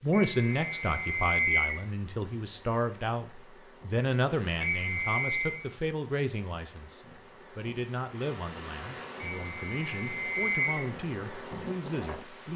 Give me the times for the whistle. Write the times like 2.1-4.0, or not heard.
0.1-1.8, 4.6-5.6, 9.2-10.8.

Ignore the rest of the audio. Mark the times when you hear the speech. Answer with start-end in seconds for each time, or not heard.
0.0-12.5.